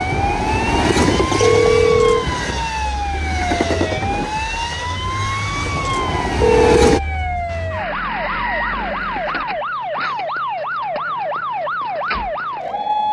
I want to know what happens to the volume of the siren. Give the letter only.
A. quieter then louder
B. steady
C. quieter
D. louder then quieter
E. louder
B.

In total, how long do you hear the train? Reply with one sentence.
You can hear the train for 7 seconds altogether.